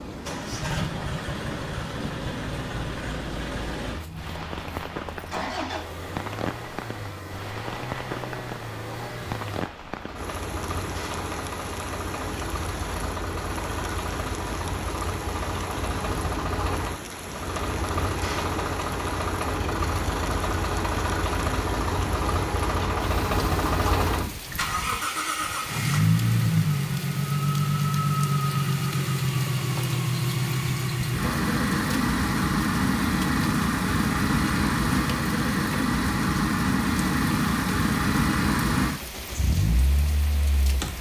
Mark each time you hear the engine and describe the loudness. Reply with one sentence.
The engine can be heard from 0.1 to 40.9 s, getting louder.